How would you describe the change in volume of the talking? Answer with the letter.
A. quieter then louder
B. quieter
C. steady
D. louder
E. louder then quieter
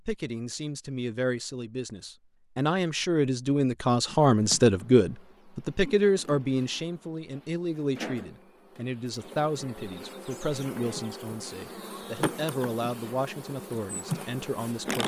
E.